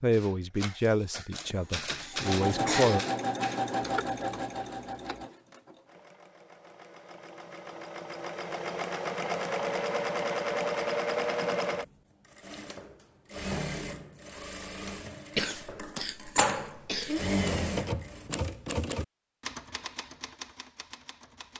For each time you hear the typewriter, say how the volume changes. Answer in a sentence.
The typewriter can be heard from 0.1 to 5.2 s, getting louder then quieter; and from 17.3 to 21.5 s, getting quieter.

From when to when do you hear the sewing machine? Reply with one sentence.
The sewing machine can be heard from 2.1 to 18.3 s.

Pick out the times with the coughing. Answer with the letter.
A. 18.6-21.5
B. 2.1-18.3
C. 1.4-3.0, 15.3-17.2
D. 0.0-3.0
C.